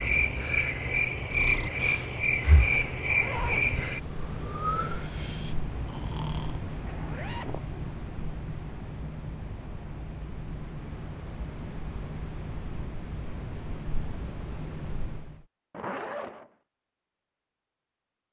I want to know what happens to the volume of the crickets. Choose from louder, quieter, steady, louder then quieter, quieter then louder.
quieter.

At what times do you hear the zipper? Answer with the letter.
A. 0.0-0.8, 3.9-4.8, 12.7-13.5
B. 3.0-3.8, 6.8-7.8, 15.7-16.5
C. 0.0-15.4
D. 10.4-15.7
B.